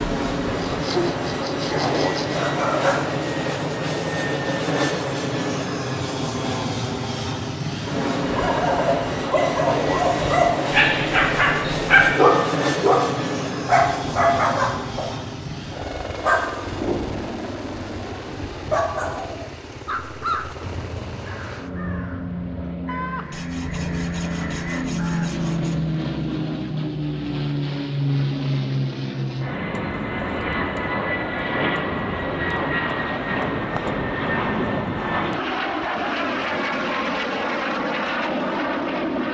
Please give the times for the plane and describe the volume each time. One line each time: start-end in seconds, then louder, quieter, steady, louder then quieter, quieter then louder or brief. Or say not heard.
0.0-39.2 quieter then louder.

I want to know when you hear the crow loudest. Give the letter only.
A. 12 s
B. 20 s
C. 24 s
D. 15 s
B.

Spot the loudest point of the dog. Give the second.
12 s.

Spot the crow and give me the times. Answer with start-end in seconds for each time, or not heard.
19.9-25.3.